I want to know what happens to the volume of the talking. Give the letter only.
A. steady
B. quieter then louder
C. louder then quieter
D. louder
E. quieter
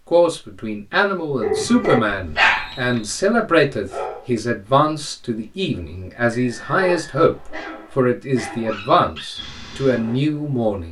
A.